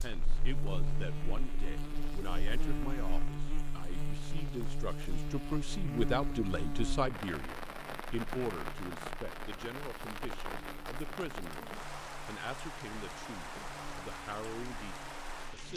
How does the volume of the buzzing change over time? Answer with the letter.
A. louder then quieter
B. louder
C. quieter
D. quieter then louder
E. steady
C.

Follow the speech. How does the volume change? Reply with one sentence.
The volume of the speech goes up, then down.